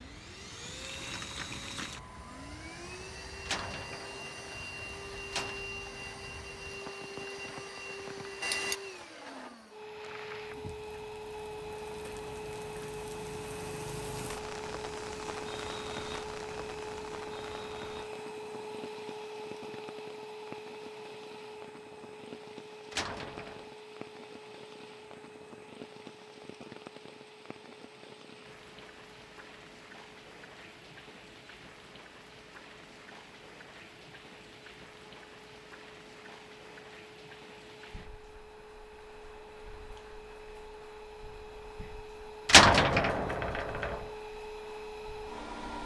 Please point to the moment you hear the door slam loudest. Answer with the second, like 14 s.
43 s.